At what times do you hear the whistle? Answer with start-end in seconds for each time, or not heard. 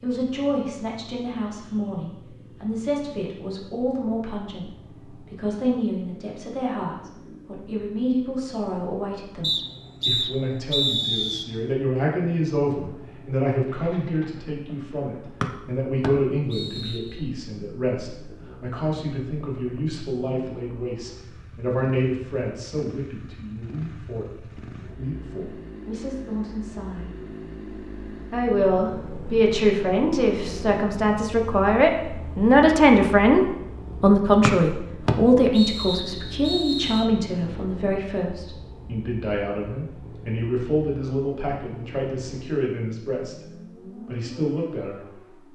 9.4-11.4, 15.4-17.0, 34.4-37.0.